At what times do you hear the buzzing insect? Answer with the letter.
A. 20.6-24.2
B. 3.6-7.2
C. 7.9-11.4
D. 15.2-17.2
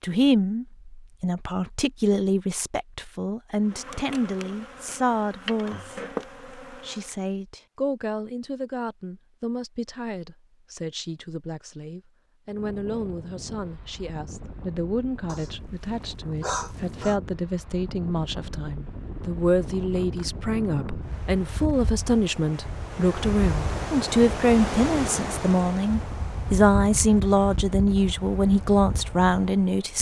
B.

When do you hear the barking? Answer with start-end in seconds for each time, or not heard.
15.2-17.2.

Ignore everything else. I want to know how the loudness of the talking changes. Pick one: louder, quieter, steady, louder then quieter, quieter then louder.
quieter then louder.